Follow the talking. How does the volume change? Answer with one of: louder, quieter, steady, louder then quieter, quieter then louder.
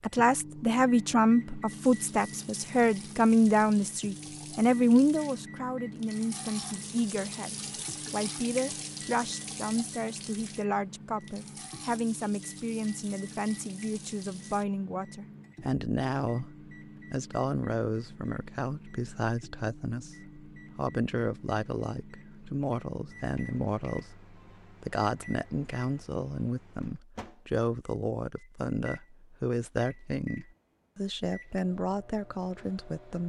quieter.